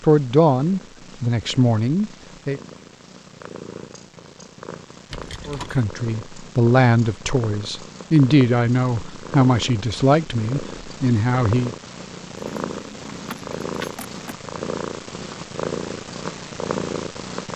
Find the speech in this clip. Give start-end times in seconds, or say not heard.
0.0-2.6, 5.5-11.8.